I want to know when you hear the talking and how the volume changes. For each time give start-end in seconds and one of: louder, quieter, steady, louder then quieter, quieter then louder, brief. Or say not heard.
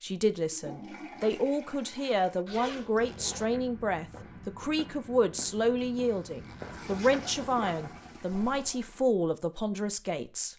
0.0-10.5 steady.